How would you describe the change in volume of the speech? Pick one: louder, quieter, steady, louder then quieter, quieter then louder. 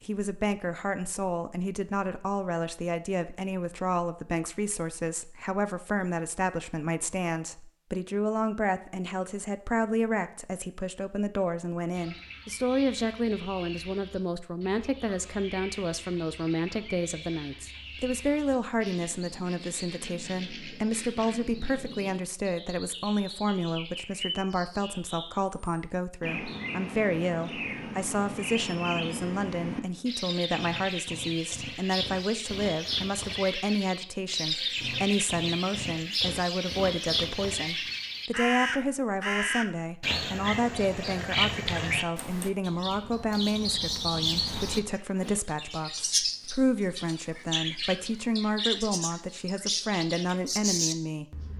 steady.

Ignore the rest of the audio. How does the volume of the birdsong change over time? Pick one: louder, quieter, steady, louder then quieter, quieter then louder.
louder.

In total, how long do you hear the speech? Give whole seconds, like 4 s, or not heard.
51 s.